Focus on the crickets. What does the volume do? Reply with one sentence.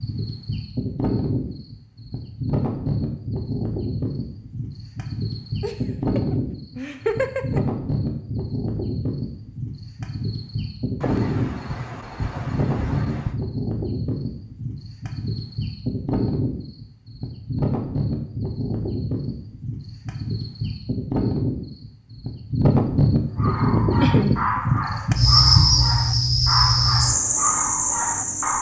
The volume of the crickets goes up.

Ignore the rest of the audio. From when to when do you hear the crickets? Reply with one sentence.
You can hear the crickets from 0.0 to 28.5 s.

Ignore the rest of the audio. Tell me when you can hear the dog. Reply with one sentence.
You can hear the dog from 23.4 to 28.5 s.